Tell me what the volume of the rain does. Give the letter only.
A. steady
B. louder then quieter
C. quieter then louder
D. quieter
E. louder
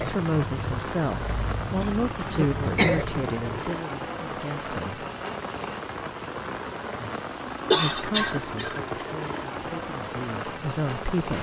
A.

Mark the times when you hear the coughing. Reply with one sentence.
The coughing can be heard from 1.8 to 3.0 s and from 7.7 to 9.1 s.